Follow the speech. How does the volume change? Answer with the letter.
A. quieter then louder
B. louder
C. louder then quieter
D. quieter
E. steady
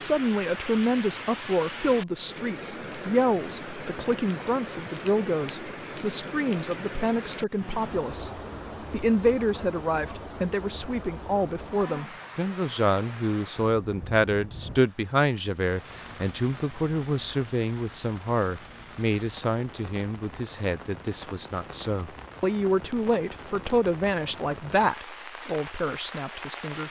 E.